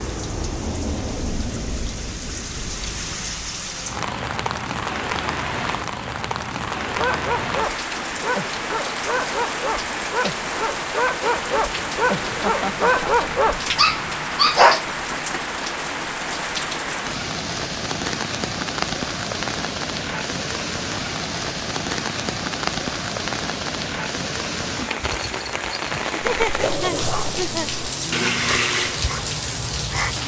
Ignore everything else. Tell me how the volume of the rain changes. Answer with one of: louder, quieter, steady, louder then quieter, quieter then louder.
steady.